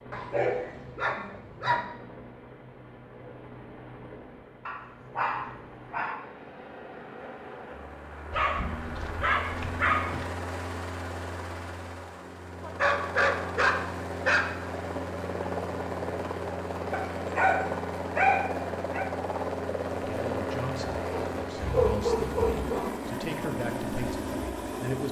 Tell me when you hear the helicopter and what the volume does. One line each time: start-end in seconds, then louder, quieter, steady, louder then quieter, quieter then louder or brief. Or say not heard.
0.0-25.0 louder.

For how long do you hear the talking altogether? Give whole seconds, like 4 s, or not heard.
5 s.